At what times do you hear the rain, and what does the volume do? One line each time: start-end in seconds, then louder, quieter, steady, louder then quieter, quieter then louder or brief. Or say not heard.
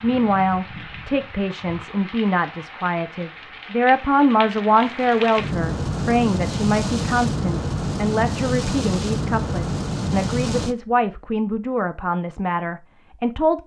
0.0-10.8 louder.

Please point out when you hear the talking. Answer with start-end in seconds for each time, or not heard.
0.0-13.6.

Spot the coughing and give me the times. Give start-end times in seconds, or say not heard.
not heard.